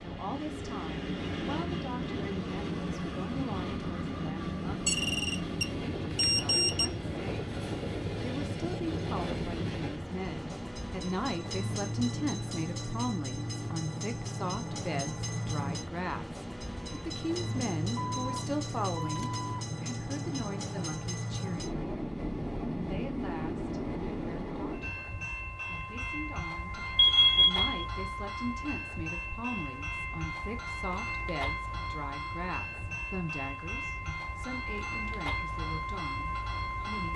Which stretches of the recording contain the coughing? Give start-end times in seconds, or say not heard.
not heard.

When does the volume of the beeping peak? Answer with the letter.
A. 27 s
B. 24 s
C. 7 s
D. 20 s
A.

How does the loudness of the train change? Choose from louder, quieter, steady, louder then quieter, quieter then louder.
steady.